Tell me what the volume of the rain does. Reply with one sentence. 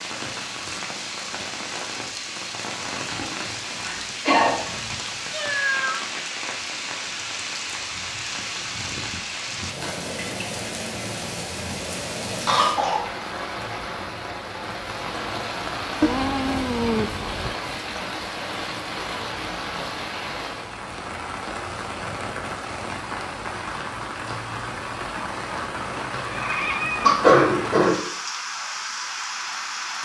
The loudness of the rain stays about the same.